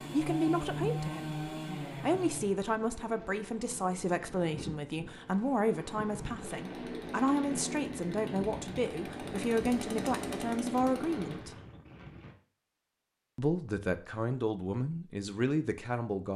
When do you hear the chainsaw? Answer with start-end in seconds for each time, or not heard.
0.0-2.5, 6.5-11.5.